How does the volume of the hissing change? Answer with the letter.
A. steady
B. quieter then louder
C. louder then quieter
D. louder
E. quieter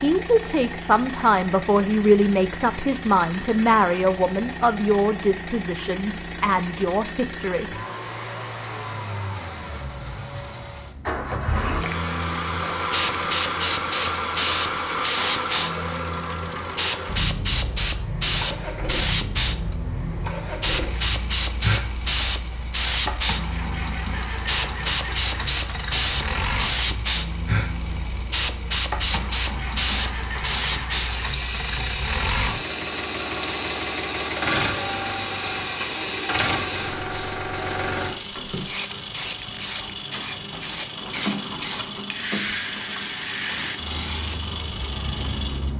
A.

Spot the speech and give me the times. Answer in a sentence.
The speech can be heard from 0.0 to 7.7 s.